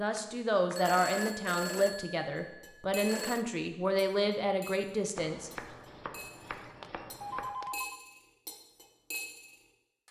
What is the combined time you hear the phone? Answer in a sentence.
You can hear the phone for 4 seconds altogether.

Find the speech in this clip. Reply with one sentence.
You can hear the speech from 0.0 to 5.5 s.